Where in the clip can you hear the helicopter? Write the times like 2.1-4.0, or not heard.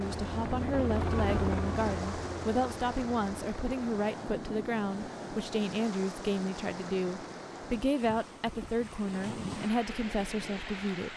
0.0-4.0.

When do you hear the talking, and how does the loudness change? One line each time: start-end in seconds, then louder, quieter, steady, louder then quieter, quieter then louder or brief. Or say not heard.
0.0-11.1 steady.